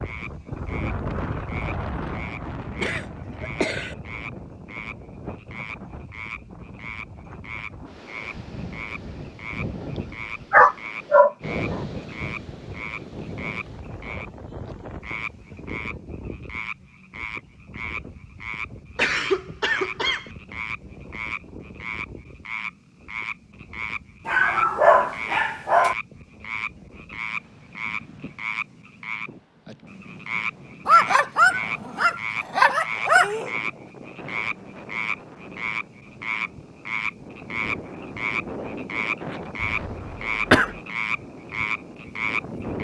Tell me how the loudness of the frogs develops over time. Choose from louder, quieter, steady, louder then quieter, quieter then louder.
louder.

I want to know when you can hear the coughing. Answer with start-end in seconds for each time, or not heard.
2.8-4.0, 18.9-20.3, 39.6-40.7.